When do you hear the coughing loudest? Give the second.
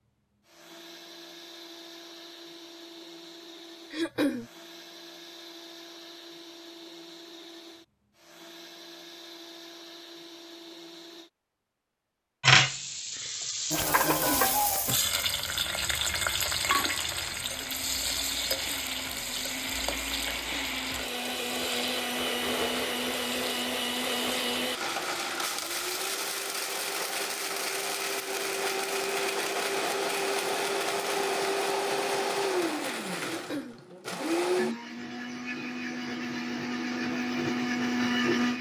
4 s.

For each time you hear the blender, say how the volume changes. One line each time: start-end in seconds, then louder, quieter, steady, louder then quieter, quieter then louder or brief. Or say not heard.
0.1-11.3 steady
15.0-38.5 louder.